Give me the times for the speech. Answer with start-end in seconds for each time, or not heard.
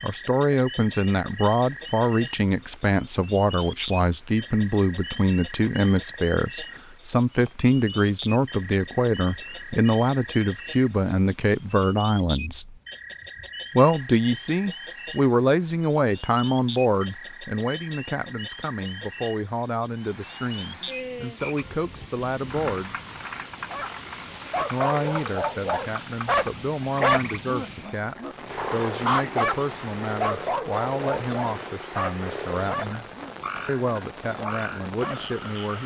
0.0-12.8, 13.8-22.9, 24.7-33.0, 33.6-35.8.